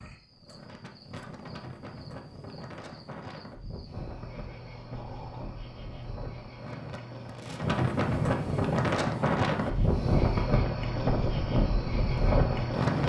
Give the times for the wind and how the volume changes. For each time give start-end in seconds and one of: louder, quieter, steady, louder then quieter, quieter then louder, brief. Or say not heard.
0.3-13.0 louder.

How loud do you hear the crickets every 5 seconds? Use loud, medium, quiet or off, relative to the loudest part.
quiet, medium, loud.